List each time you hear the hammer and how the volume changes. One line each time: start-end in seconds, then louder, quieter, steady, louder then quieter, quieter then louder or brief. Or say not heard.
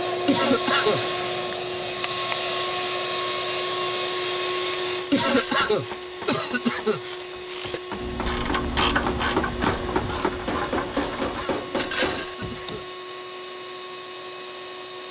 5.0-12.8 louder.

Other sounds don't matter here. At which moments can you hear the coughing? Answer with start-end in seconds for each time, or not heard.
0.2-1.1, 5.1-7.0, 11.2-12.8.